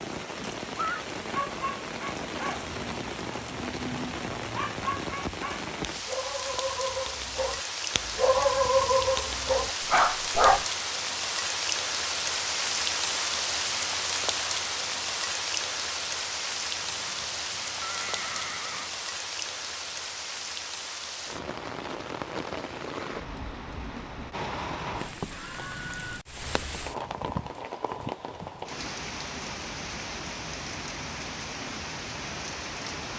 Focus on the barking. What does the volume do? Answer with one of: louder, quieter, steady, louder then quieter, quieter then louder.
louder.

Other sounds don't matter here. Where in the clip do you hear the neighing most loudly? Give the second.
1 s.